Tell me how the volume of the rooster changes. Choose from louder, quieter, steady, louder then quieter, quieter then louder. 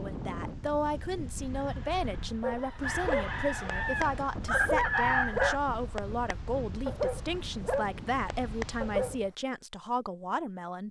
louder.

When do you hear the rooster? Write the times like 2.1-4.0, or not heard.
1.6-5.5.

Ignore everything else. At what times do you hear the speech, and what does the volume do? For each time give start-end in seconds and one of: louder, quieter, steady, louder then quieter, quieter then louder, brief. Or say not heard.
0.0-10.8 steady.